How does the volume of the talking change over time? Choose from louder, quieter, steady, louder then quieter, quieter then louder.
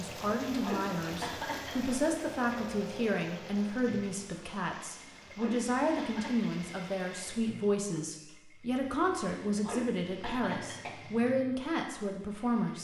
steady.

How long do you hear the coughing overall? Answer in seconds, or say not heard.
5 s.